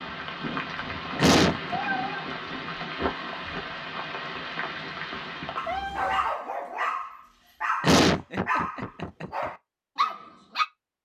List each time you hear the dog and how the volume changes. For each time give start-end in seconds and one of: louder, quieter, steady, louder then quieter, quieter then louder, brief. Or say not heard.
5.5-10.7 steady.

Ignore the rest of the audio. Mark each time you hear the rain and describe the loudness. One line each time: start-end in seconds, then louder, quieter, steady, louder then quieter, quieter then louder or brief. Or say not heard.
0.0-5.8 steady.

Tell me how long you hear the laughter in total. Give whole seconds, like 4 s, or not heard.
2 s.